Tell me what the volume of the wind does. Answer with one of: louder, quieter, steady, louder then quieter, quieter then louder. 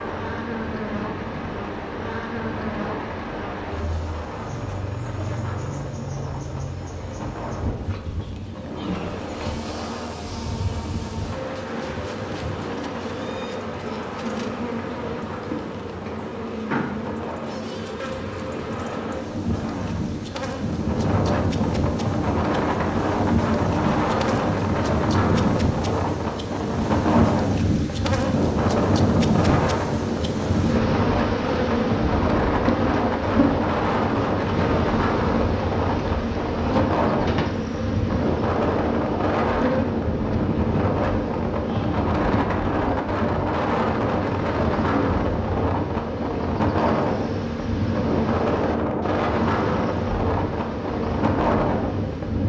louder.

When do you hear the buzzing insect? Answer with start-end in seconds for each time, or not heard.
0.0-52.4.